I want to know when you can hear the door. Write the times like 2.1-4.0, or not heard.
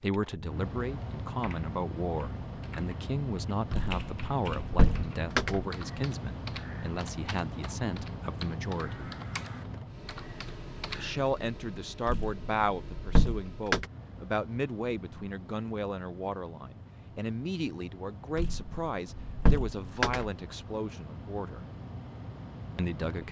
3.7-5.7, 12.1-13.8, 18.4-20.3.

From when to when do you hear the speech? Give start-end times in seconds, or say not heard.
0.0-9.2, 10.9-21.6, 22.8-23.2.